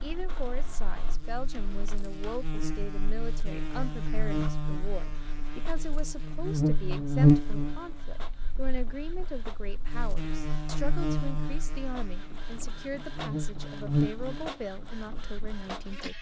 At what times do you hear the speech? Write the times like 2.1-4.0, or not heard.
0.0-16.1.